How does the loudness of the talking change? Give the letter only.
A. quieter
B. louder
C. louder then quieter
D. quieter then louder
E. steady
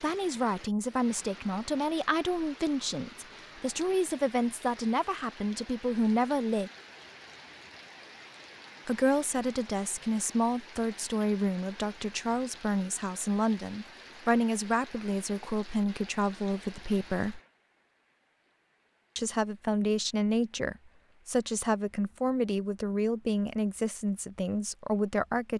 E.